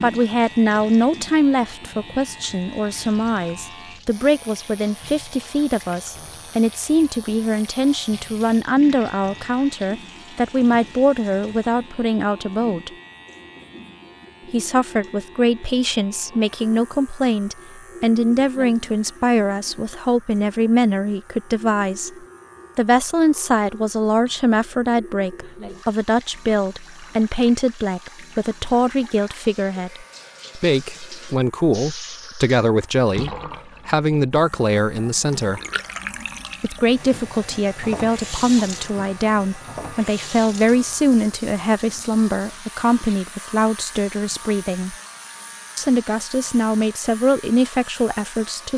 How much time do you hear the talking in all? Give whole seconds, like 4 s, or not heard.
45 s.